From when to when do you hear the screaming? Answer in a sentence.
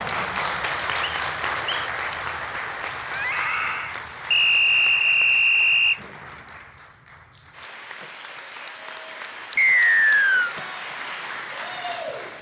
The screaming can be heard from 3.1 to 4.0 s.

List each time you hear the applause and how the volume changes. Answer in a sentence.
You can hear the applause from 0.0 to 12.3 s, getting quieter then louder.